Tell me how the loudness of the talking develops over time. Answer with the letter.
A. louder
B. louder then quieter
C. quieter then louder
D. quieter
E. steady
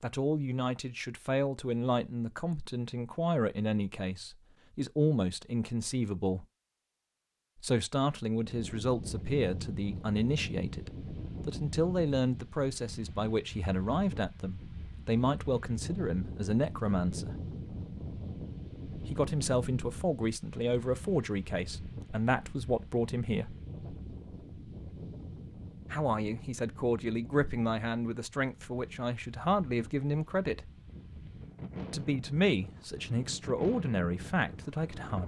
E.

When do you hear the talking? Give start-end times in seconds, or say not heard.
0.0-6.5, 7.6-17.4, 19.0-23.6, 25.9-30.7, 31.9-35.2.